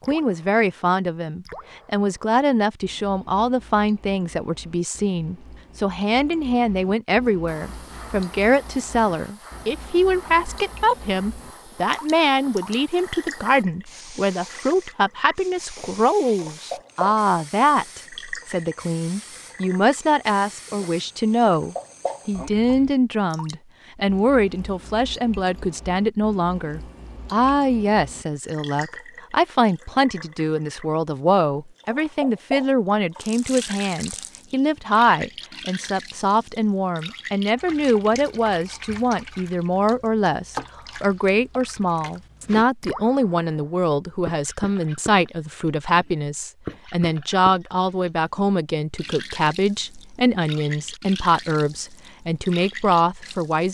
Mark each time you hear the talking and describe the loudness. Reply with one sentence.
The talking can be heard from 0.0 to 53.6 s, at a steady volume.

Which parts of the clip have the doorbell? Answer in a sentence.
The doorbell can't be heard in this clip.